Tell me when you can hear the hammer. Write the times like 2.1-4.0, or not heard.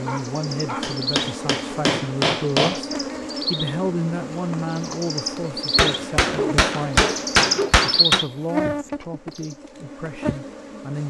0.8-2.8, 5.8-8.2.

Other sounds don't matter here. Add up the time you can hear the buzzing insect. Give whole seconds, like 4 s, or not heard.
11 s.